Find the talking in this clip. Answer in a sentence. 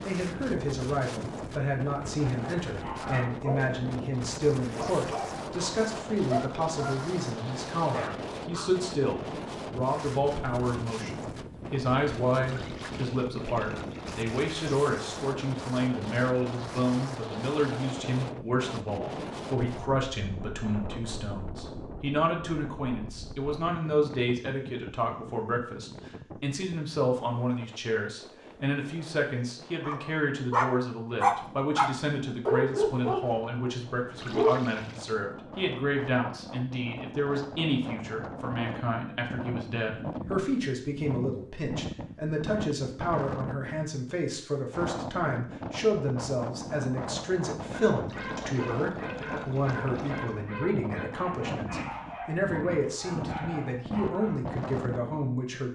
The talking can be heard from 0.1 to 55.6 s.